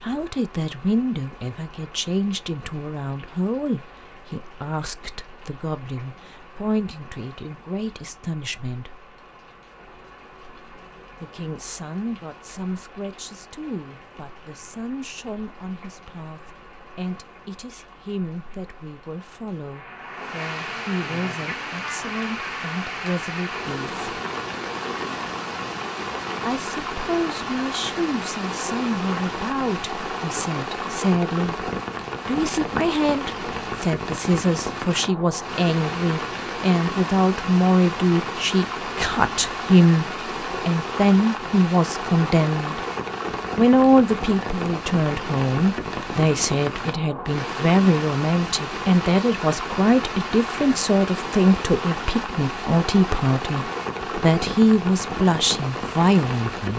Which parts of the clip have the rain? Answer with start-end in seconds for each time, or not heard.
0.0-56.7.